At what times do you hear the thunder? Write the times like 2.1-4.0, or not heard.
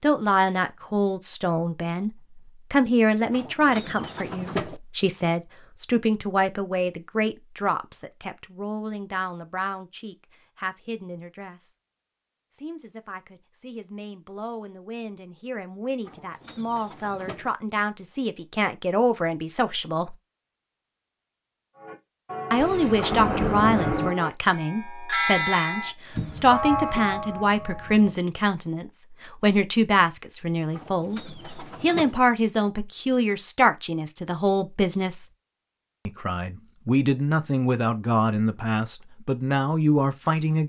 22.6-24.1.